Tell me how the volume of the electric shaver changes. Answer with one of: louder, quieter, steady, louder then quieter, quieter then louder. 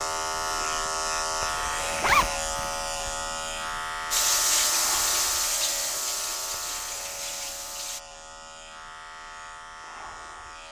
quieter.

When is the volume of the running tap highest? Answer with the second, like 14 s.
5 s.